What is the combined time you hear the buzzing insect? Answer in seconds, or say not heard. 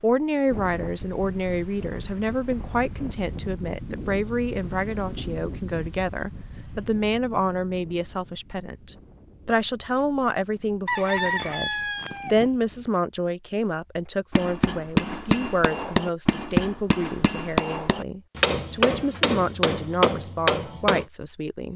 not heard.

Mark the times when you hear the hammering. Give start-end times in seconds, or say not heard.
14.3-21.1.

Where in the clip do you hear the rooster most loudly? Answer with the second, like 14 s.
11 s.